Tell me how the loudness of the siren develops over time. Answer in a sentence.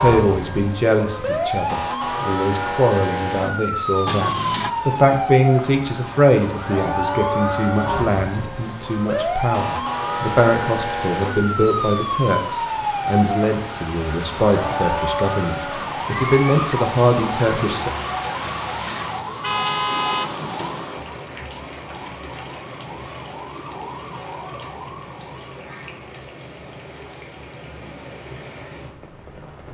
The volume of the siren goes down.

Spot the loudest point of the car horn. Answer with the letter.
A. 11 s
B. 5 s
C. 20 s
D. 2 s
C.